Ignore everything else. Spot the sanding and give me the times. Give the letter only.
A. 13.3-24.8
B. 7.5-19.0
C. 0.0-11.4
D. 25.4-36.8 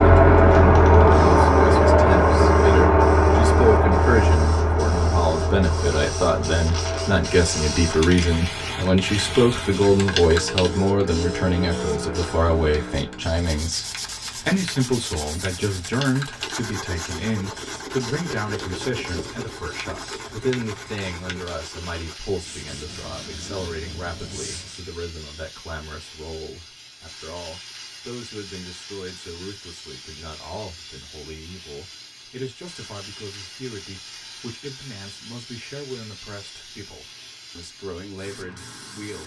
A.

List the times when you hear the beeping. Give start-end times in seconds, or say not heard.
not heard.